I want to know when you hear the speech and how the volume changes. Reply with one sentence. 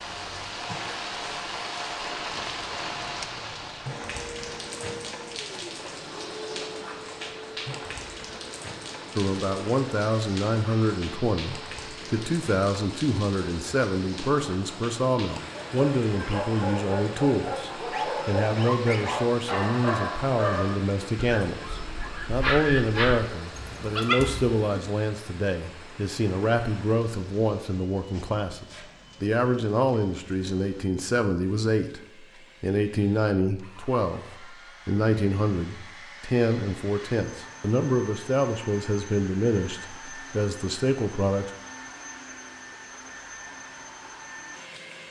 You can hear the speech from 9.2 to 32.0 s, at a steady volume; and from 32.6 to 41.5 s, at a steady volume.